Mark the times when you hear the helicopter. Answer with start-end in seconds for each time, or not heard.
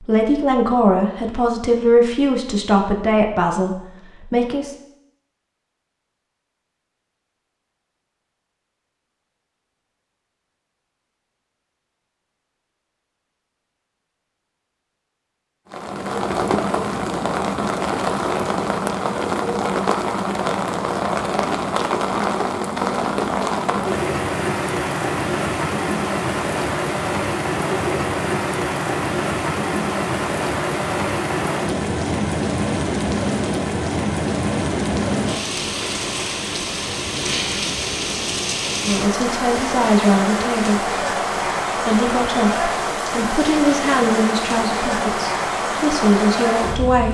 not heard.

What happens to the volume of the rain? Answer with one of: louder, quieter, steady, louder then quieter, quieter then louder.
steady.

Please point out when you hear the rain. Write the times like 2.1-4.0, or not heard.
15.7-47.0.